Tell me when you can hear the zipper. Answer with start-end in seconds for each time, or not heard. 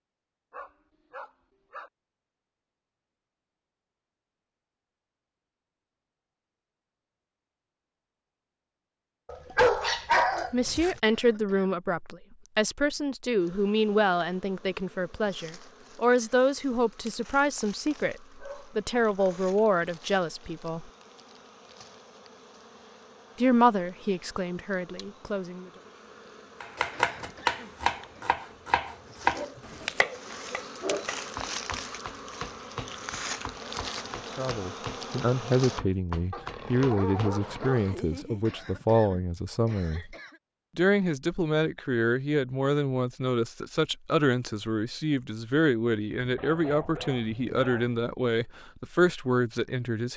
not heard.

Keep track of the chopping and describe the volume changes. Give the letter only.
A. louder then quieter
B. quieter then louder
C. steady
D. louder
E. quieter
E.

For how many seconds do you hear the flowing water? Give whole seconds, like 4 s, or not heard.
not heard.